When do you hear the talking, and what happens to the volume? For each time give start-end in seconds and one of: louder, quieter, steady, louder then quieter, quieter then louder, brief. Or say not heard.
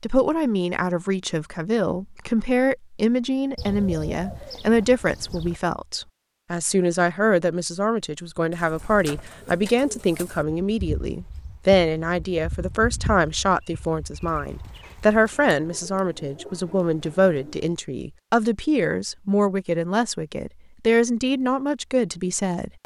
0.0-22.8 steady.